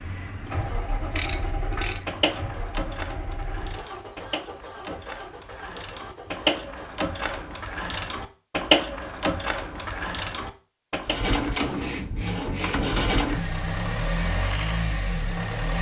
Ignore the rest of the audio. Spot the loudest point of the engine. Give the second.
13 s.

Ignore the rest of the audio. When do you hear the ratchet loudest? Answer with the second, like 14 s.
9 s.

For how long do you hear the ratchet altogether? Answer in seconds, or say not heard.
10 s.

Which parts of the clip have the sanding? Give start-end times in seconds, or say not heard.
11.6-13.2.